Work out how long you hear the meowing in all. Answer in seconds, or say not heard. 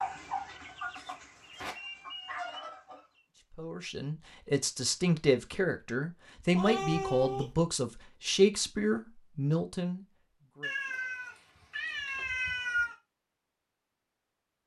6 s.